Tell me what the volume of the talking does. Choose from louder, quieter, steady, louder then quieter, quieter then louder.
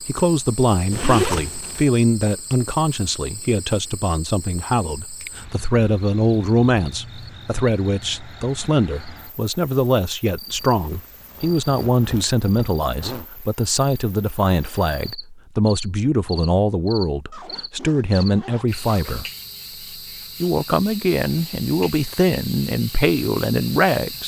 steady.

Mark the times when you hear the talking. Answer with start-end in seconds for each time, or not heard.
0.0-19.2, 20.4-24.2.